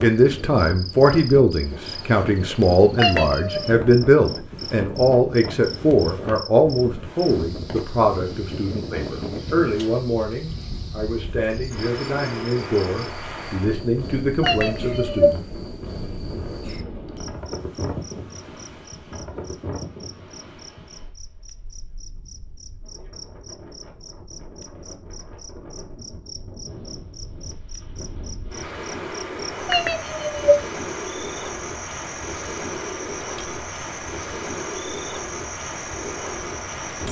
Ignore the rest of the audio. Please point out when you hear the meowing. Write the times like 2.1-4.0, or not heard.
3.0-3.8, 14.4-15.3, 29.6-30.6.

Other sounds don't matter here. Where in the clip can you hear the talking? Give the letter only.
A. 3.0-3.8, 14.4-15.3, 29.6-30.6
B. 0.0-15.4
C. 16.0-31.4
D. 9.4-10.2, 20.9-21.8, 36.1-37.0
B.